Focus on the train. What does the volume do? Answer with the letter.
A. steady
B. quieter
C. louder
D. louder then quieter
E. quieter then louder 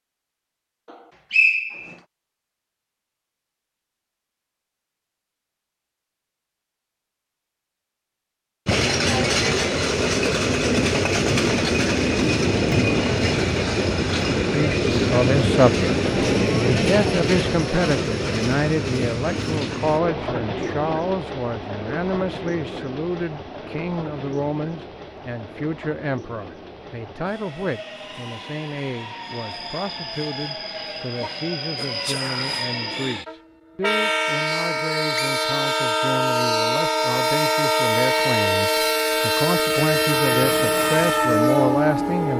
E.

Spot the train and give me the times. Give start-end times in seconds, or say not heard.
8.7-42.3.